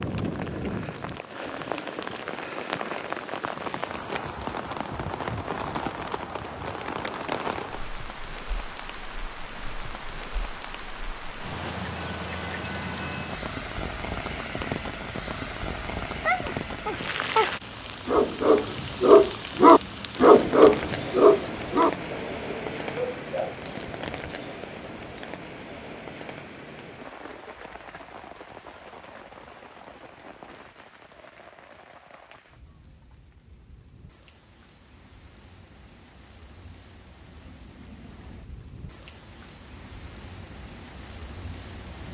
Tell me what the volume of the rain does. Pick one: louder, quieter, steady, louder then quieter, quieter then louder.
quieter.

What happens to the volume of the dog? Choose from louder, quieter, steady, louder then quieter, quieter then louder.
louder then quieter.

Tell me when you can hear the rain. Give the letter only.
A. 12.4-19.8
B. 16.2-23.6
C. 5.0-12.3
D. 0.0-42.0
D.